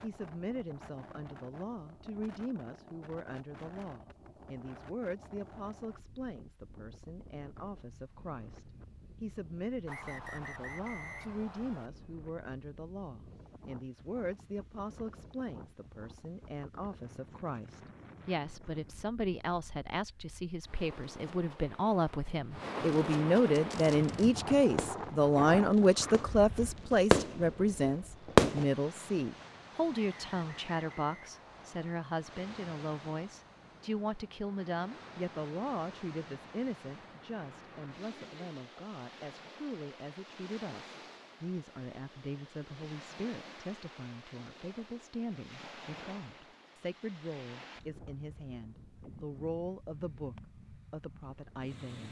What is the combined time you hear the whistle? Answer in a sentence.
The whistle can be heard for 4 seconds in total.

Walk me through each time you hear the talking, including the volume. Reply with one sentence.
The talking can be heard from 0.0 to 52.0 s, getting louder then quieter.